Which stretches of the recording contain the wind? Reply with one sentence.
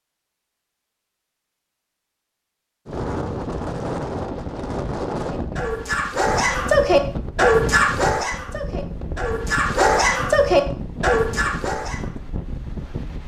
You can hear the wind from 2.9 to 13.2 s.